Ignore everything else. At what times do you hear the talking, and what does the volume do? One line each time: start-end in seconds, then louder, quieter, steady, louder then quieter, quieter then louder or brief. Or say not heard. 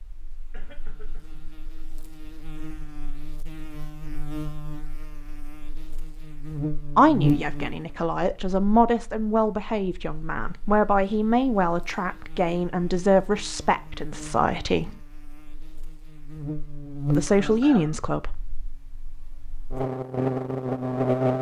7.0-15.0 steady
17.1-18.4 brief.